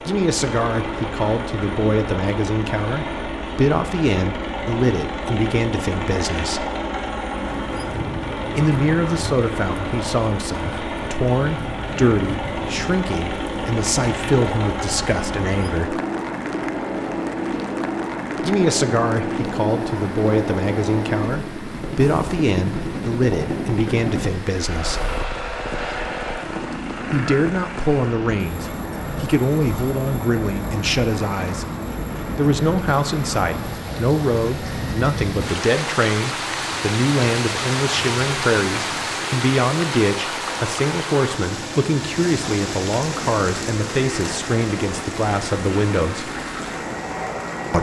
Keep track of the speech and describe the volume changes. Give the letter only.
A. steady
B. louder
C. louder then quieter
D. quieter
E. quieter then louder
A.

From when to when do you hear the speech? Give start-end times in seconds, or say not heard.
0.1-6.7, 8.6-16.0, 18.4-25.1, 27.1-31.6, 32.4-46.3.